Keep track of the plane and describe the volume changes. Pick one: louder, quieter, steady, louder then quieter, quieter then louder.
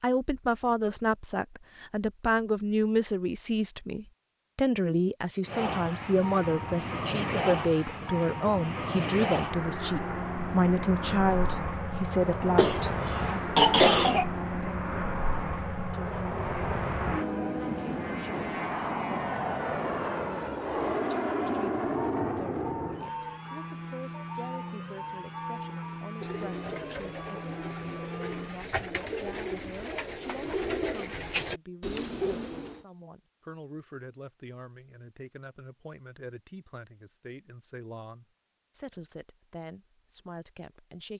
quieter.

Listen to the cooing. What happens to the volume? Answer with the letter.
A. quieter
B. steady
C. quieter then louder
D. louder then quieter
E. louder
E.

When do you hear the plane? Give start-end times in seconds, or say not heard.
5.4-28.7.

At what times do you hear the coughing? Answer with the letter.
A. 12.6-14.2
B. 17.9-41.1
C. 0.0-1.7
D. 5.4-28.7
A.